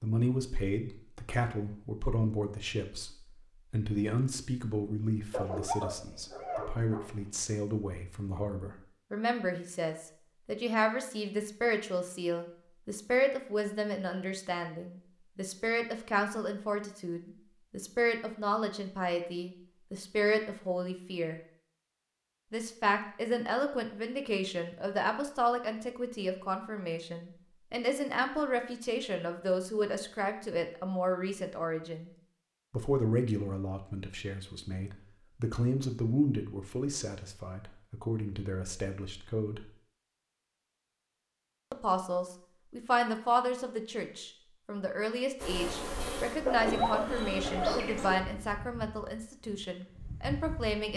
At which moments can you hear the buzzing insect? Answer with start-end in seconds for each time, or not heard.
45.4-50.9.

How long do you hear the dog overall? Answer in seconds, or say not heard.
4 s.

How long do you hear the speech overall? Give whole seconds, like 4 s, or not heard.
47 s.